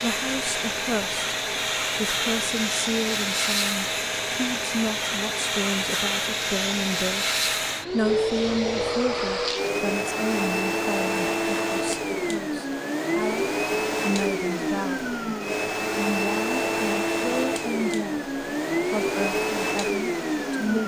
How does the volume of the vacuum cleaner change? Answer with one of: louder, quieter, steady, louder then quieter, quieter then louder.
steady.